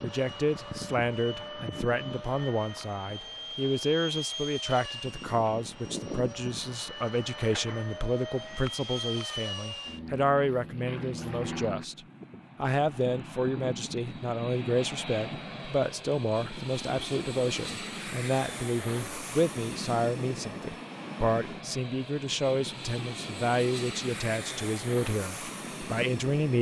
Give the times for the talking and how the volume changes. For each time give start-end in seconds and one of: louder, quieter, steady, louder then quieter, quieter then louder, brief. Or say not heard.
0.0-26.5 steady.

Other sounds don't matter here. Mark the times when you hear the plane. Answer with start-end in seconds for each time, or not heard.
0.0-26.5.